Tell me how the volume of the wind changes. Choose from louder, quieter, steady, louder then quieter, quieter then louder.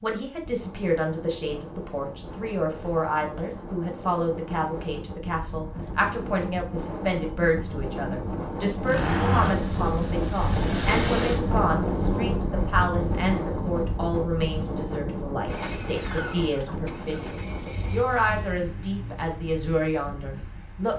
louder then quieter.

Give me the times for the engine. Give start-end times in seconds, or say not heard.
8.8-11.6, 15.4-19.3.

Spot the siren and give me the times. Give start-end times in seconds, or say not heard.
not heard.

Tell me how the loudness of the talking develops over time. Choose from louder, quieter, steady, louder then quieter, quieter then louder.
steady.